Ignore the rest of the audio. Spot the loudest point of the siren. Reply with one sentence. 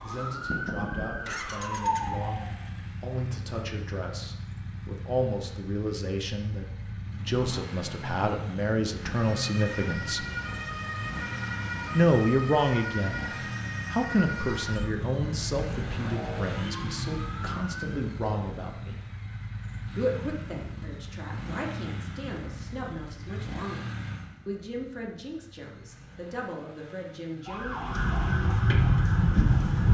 The loudest moment of the siren is at 29 seconds.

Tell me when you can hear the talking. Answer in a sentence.
The talking can be heard from 0.0 to 10.2 s, from 11.9 to 19.0 s and from 19.9 to 27.8 s.